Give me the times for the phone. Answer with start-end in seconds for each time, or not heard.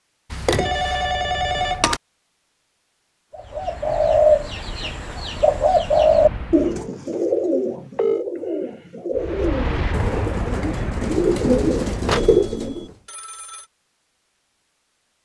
0.3-2.0, 6.8-8.2, 12.1-13.7.